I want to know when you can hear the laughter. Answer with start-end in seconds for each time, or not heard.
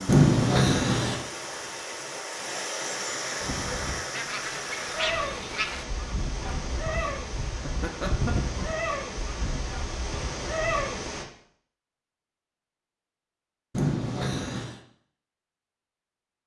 0.1-1.2, 6.5-8.4, 13.7-14.8.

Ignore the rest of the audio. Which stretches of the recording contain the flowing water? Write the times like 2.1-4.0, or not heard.
0.0-11.2.